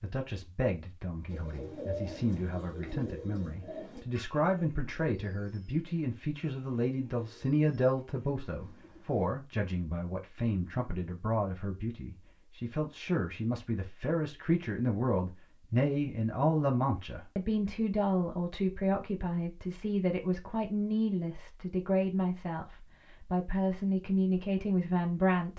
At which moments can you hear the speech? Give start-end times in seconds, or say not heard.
0.0-25.5.